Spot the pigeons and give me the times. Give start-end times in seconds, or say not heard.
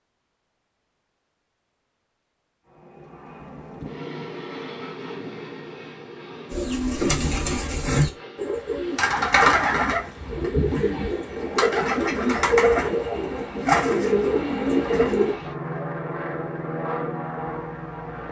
6.5-15.3.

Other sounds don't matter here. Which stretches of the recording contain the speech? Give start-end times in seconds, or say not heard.
not heard.